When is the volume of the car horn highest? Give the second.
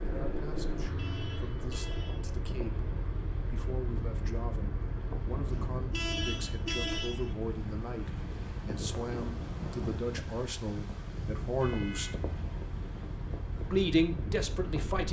7 s.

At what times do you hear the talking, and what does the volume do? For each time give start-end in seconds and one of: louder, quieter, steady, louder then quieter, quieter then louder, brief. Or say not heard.
0.0-12.1 louder
13.6-15.0 brief.